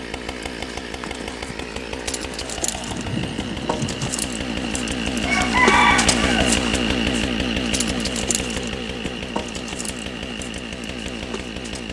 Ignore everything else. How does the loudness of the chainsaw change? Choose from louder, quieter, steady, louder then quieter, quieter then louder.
louder then quieter.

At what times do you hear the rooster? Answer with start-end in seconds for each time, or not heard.
5.2-6.5.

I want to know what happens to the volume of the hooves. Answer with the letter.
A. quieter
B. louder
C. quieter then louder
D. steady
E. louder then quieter
E.